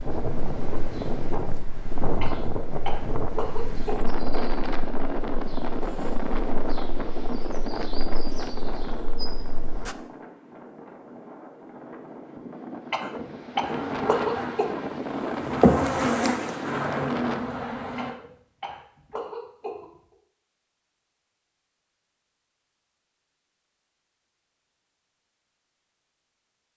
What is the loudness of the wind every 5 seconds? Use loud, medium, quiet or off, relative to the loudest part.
loud, loud, medium, loud, off, off.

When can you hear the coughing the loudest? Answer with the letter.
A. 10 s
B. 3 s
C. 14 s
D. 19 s
C.